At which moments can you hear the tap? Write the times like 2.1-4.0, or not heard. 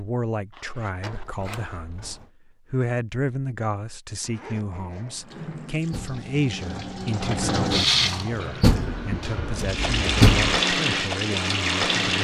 5.2-12.1.